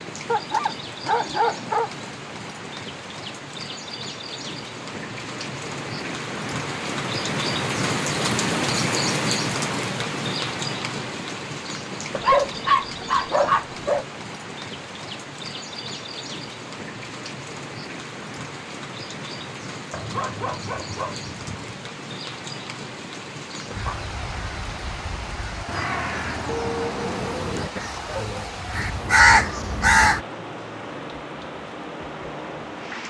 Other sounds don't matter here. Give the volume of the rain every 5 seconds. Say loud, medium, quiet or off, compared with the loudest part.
medium, loud, medium, medium, medium, medium, medium.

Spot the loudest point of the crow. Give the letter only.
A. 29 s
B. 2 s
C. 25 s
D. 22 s
A.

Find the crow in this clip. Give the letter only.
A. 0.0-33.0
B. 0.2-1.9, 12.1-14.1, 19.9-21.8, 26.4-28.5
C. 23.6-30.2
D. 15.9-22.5
C.